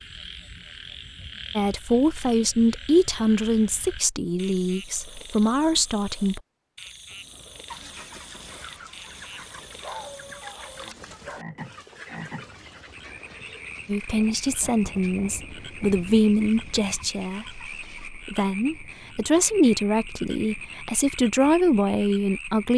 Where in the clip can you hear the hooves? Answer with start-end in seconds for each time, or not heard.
not heard.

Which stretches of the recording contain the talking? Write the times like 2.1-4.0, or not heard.
1.6-6.4, 13.8-22.7.